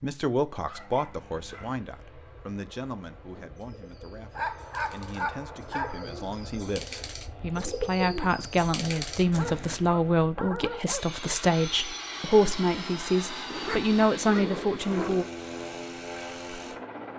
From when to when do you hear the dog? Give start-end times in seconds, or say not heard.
0.5-1.8, 4.3-6.0, 9.3-11.1, 13.5-15.3.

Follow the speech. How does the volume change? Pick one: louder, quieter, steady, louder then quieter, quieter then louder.
quieter then louder.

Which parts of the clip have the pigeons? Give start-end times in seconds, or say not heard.
3.3-9.8.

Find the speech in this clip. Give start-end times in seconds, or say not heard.
0.0-15.2.